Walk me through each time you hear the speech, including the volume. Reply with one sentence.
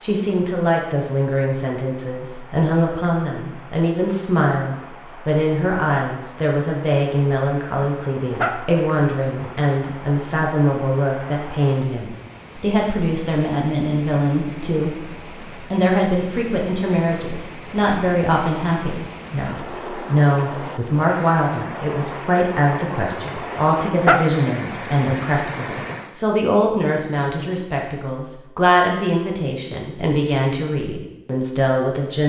You can hear the speech from 0.0 to 32.2 s, at a steady volume.